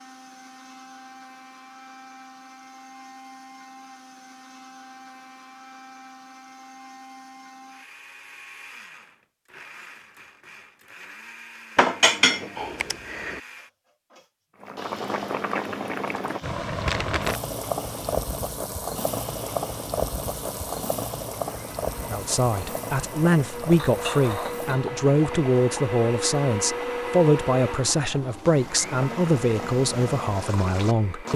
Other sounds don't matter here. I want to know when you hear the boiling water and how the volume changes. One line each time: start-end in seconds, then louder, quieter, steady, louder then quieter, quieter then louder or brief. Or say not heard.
14.6-31.3 quieter.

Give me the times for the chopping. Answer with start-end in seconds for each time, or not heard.
not heard.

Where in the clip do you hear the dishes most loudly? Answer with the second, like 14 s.
12 s.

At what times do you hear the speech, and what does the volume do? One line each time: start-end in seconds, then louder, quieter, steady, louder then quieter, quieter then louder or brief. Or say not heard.
22.1-31.3 steady.